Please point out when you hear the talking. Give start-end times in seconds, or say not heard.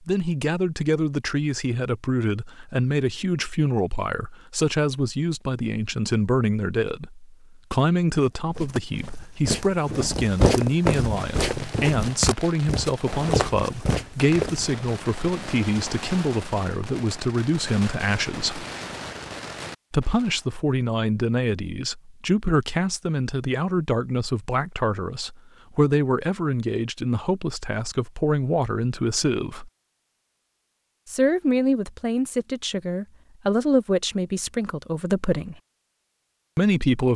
0.1-18.6, 19.9-29.7, 31.1-35.5, 36.5-37.1.